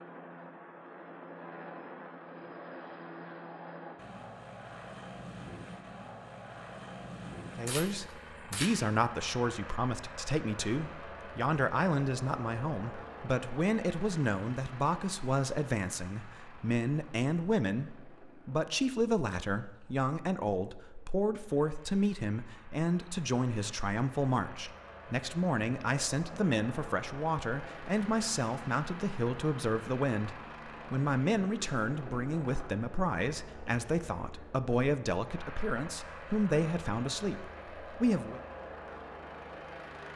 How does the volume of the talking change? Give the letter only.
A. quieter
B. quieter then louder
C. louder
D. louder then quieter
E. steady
E.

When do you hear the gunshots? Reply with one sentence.
The gunshots can be heard from 7.5 to 8.8 s.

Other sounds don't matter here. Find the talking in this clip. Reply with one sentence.
You can hear the talking from 7.5 to 38.4 s.